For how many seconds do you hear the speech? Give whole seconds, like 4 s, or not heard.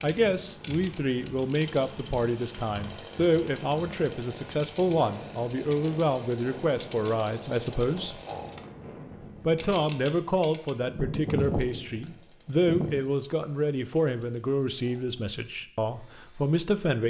16 s.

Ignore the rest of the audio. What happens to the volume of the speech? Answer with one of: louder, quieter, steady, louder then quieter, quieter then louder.
steady.